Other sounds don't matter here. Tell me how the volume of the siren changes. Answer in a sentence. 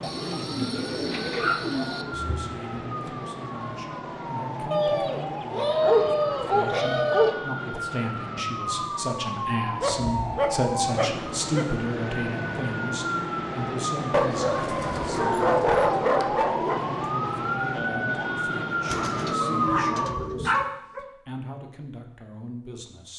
The volume of the siren goes up.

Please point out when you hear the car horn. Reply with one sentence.
The car horn can't be heard in this clip.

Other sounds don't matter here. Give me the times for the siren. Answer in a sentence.
You can hear the siren from 0.0 to 20.2 s.